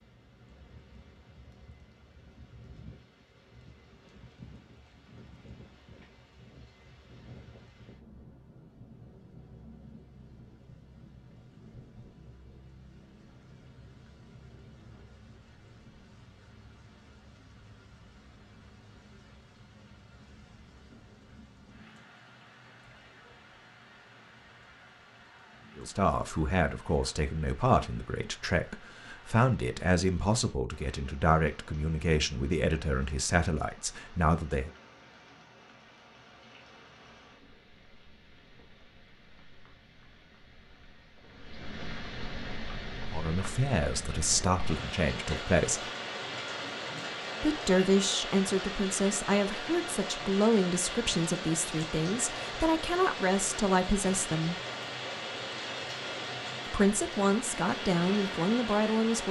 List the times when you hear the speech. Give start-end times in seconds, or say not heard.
25.8-34.7, 43.1-45.9, 47.4-54.5, 56.6-59.2.